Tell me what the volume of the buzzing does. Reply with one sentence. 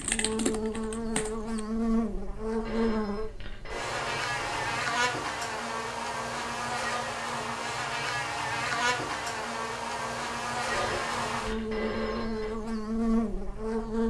The volume of the buzzing stays about the same.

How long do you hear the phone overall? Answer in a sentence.
You can hear the phone for 4 seconds altogether.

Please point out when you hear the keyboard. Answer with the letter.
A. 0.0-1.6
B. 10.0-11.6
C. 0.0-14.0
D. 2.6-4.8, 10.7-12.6
A.